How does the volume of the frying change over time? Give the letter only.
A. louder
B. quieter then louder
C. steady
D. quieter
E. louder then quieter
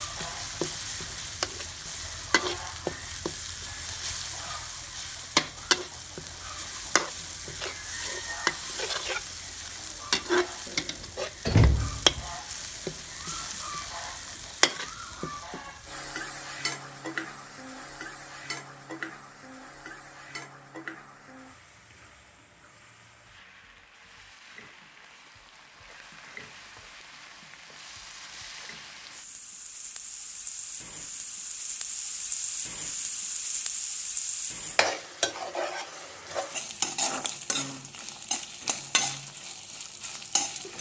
B.